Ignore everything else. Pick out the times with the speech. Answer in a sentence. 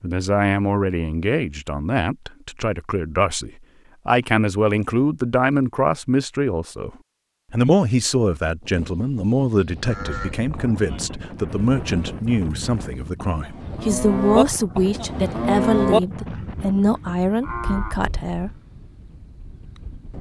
You can hear the speech from 0.0 to 6.9 s and from 7.5 to 18.5 s.